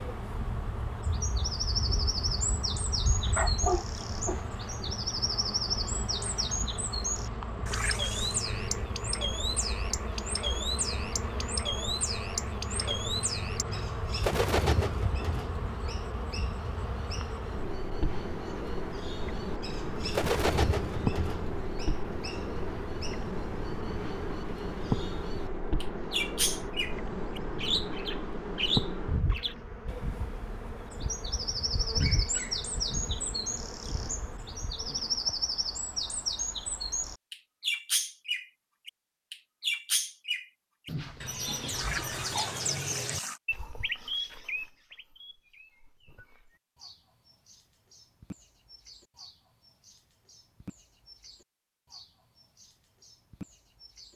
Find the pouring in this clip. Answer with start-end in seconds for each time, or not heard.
7.7-8.4, 41.7-43.4.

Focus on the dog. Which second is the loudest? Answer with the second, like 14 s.
4 s.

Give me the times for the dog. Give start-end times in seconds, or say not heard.
3.4-5.0, 31.9-32.7, 40.9-42.5.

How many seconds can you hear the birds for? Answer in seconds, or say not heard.
54 s.